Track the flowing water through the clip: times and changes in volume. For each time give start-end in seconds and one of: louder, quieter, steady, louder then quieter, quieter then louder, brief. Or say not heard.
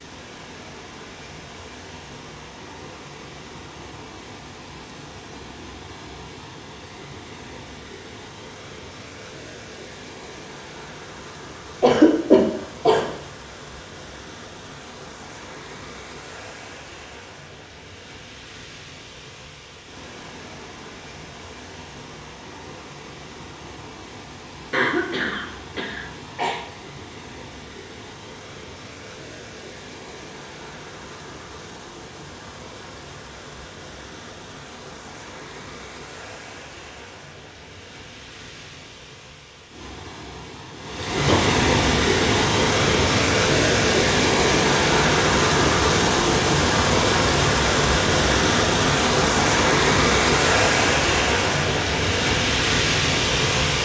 0.0-53.8 louder.